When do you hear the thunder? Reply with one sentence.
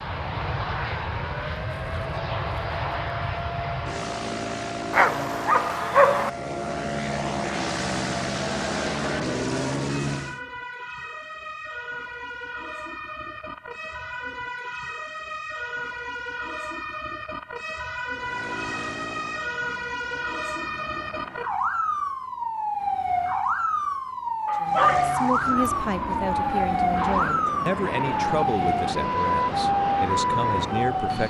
The thunder can't be heard in this clip.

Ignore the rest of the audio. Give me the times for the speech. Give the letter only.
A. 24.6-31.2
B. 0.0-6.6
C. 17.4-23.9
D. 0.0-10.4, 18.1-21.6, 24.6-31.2
A.